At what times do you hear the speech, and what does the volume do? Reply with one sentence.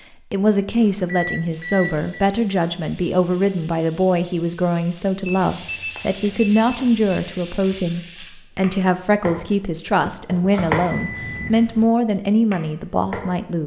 You can hear the speech from 0.3 to 13.6 s, at a steady volume.